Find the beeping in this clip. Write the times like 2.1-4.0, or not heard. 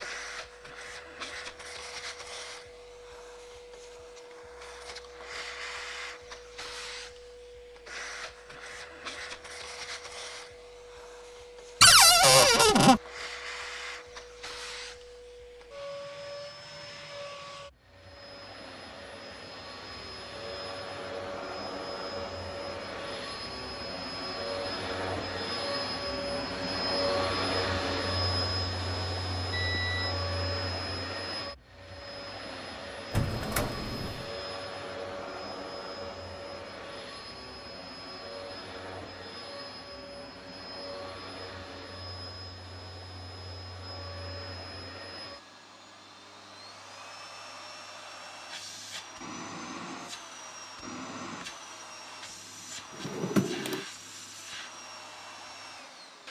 29.5-30.1.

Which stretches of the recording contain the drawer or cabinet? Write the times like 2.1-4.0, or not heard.
11.8-13.0, 33.1-34.3, 52.9-53.9.